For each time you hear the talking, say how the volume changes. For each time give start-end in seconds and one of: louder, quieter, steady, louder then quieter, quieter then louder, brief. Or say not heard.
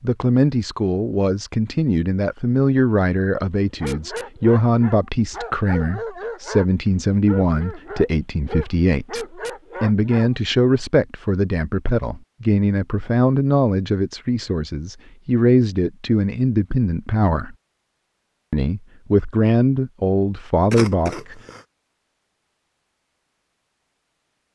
0.0-17.6 steady
18.5-21.4 brief.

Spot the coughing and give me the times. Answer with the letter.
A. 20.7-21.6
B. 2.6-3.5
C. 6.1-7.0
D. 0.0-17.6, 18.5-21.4
A.